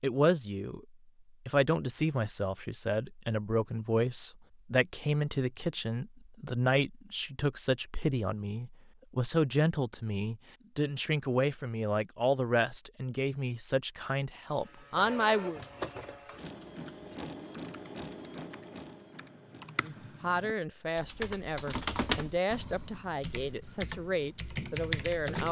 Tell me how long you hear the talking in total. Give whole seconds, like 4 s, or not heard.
21 s.